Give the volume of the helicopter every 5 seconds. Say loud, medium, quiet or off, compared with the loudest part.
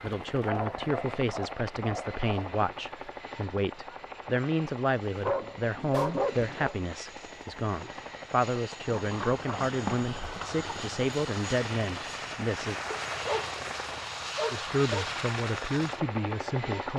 medium, medium, loud, loud.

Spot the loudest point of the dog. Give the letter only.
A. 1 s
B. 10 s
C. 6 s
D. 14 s
C.